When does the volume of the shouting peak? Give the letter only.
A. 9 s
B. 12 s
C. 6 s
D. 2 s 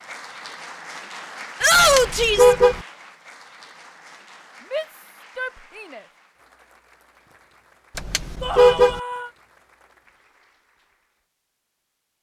D.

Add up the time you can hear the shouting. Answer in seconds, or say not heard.
3 s.